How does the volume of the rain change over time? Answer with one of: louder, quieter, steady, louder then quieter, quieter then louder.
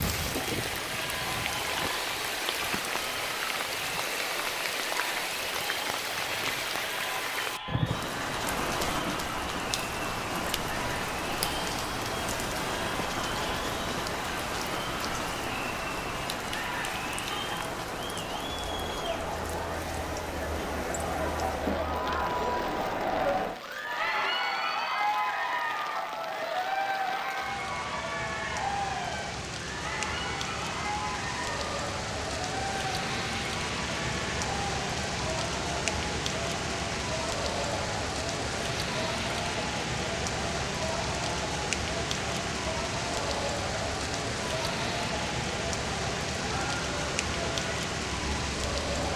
quieter then louder.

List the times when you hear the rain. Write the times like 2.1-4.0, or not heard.
0.0-49.1.